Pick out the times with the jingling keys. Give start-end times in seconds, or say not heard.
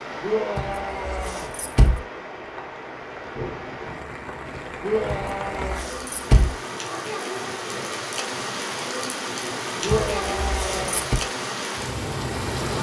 0.6-2.0, 5.1-6.5, 9.9-11.2.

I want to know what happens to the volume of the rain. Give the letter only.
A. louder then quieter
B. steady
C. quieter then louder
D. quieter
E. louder
E.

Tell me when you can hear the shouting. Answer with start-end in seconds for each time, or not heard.
0.2-1.5, 4.8-5.8, 9.8-11.1.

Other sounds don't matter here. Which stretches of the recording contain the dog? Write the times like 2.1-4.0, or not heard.
not heard.